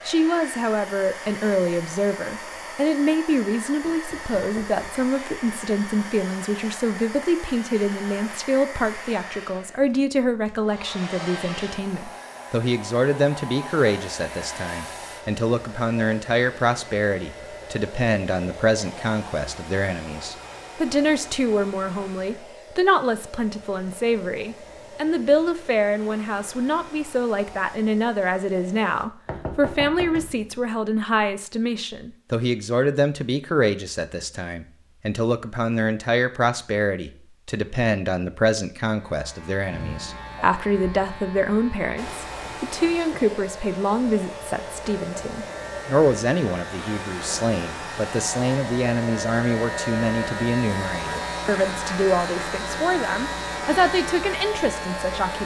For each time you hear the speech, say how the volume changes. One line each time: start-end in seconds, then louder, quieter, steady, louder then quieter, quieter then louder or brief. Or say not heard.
0.1-55.4 steady.